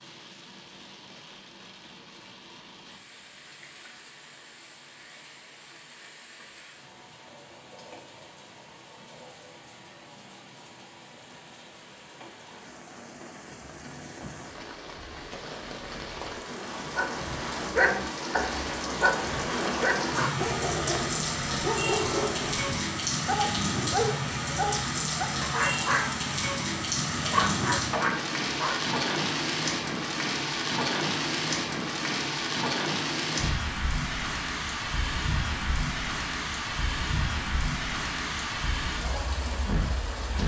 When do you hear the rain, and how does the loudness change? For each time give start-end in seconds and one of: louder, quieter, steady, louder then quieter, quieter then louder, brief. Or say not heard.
0.0-40.4 louder.